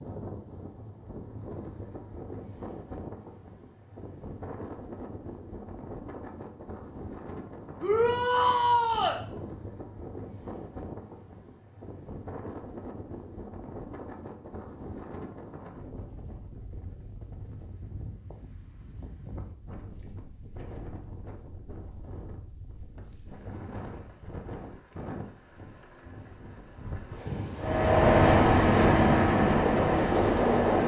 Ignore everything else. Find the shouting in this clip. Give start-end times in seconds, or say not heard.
7.8-9.2.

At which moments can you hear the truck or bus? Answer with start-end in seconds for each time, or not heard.
27.6-30.8.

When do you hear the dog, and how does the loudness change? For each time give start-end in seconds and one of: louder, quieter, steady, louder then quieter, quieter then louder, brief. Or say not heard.
not heard.